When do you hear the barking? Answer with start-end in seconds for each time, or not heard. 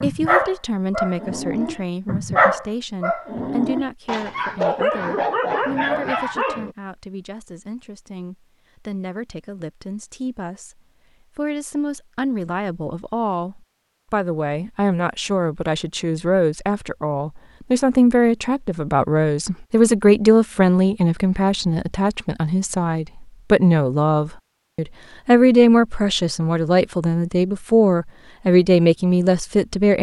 0.0-6.7.